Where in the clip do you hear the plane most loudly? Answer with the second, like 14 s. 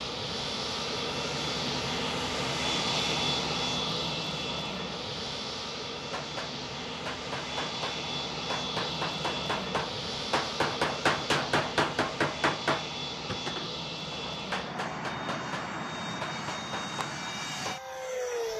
3 s.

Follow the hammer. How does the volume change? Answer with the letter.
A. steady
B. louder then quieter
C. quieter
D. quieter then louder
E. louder
B.